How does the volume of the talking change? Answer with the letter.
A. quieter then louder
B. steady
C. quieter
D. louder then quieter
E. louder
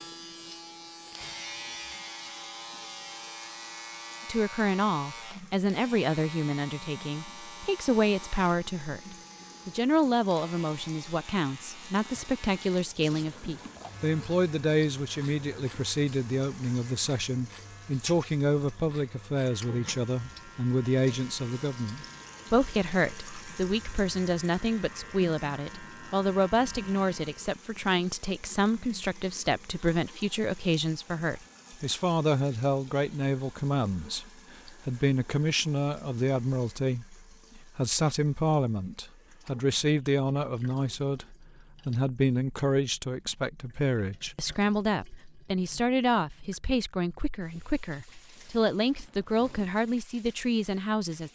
B.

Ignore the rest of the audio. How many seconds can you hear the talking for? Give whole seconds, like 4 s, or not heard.
47 s.